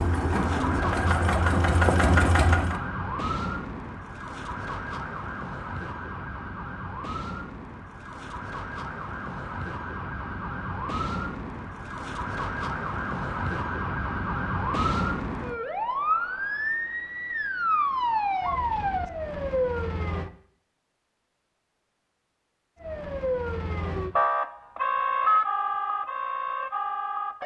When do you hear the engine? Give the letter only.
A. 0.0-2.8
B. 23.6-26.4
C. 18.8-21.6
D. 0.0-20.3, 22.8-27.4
A.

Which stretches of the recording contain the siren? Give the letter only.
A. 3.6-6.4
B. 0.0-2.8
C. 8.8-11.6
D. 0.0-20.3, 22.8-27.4
D.